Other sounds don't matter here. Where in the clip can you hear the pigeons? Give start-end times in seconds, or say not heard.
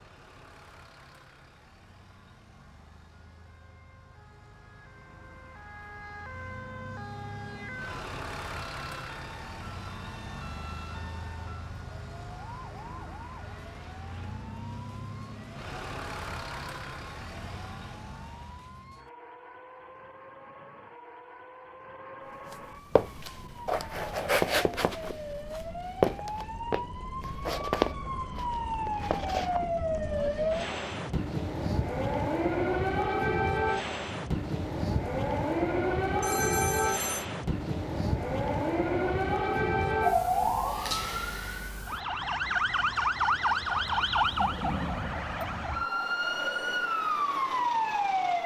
not heard.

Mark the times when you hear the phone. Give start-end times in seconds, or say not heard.
36.2-37.2.